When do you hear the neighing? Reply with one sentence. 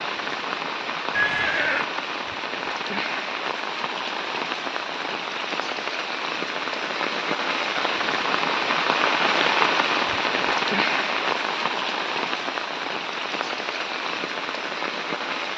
The neighing can be heard from 1.1 to 1.9 s.